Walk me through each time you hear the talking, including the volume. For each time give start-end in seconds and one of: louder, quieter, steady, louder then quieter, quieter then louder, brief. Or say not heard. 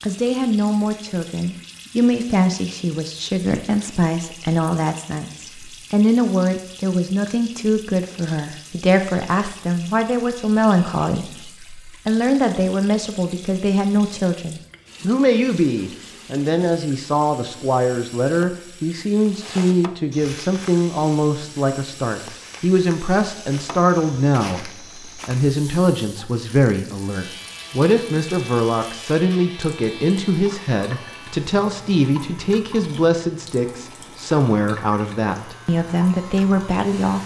0.0-37.2 steady.